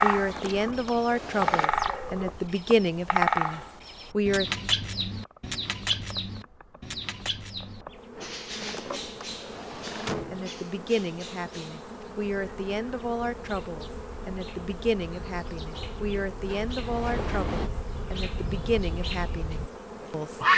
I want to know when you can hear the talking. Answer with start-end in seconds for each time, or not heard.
0.0-4.5, 10.3-20.4.